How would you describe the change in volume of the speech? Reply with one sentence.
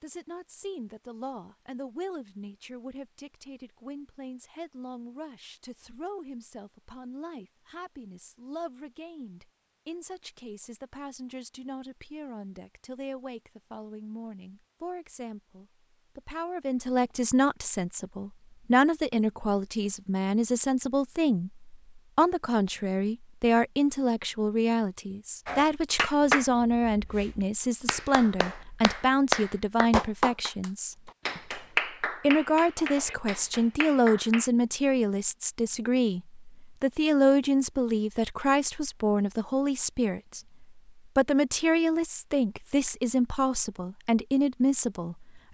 The volume of the speech goes up.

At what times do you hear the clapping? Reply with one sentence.
You can hear the clapping from 25.4 to 34.5 s.